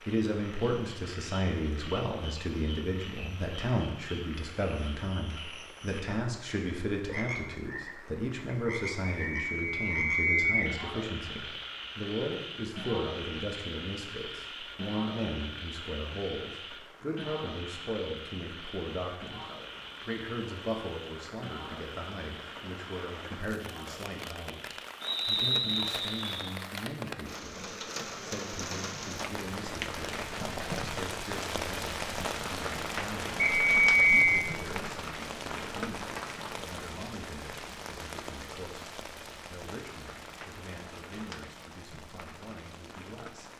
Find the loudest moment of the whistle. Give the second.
34 s.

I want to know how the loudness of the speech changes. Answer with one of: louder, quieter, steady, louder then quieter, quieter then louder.
quieter.